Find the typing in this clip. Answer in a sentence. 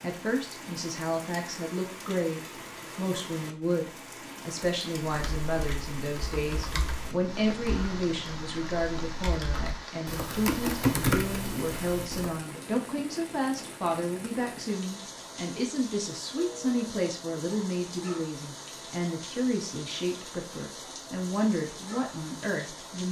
The typing can be heard from 5.0 to 12.4 s.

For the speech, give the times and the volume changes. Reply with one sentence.
You can hear the speech from 0.0 to 23.0 s, at a steady volume.